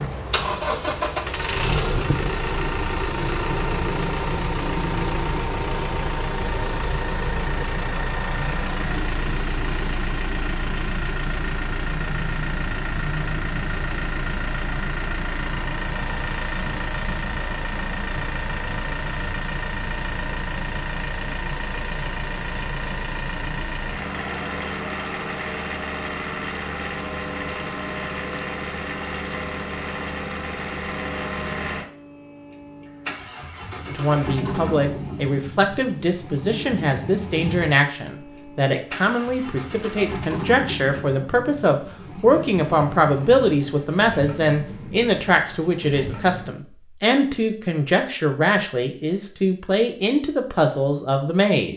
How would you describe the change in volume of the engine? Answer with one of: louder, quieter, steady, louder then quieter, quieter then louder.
quieter.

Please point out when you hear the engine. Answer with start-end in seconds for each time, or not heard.
0.0-46.5.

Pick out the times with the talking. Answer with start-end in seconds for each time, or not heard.
33.9-51.7.